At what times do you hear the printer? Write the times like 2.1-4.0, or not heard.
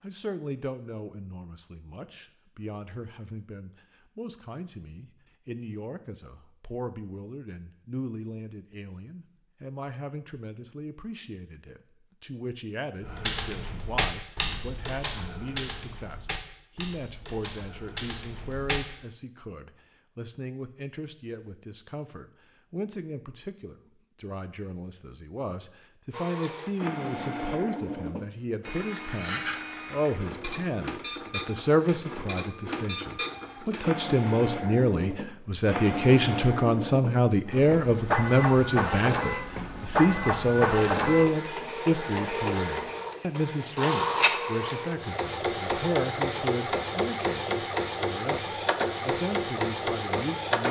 26.1-50.6.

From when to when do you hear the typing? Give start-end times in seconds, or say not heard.
13.0-18.8.